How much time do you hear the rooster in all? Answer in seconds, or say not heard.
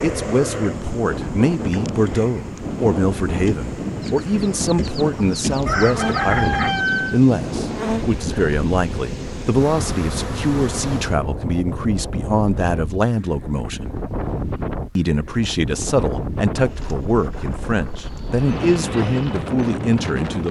3 s.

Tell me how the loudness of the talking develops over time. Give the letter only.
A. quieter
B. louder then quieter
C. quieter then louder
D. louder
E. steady
E.